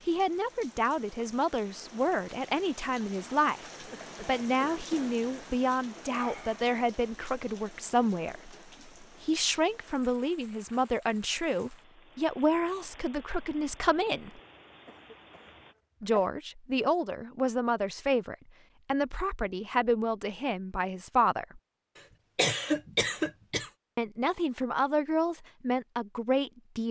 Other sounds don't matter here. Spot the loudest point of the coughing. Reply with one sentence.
The loudest moment of the coughing is at 23 seconds.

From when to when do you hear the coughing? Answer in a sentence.
The coughing can be heard from 3.8 to 5.5 s, from 14.4 to 16.3 s and from 21.9 to 23.7 s.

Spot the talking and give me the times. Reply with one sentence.
The talking can be heard from 0.1 to 14.4 s, from 16.0 to 21.6 s and from 23.9 to 26.8 s.